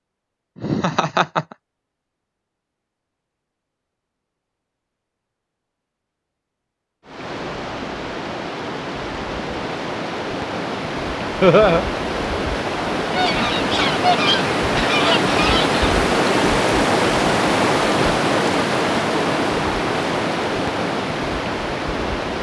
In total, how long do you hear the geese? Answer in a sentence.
The geese can be heard for 3 seconds in total.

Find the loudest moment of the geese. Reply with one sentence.
The loudest moment of the geese is at 14 seconds.